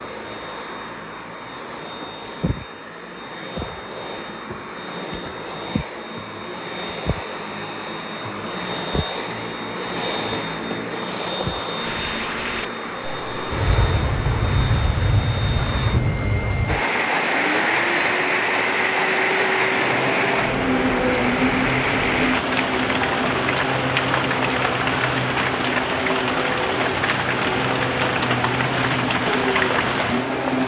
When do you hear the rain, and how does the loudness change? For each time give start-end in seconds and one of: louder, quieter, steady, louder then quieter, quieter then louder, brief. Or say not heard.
11.8-30.6 steady.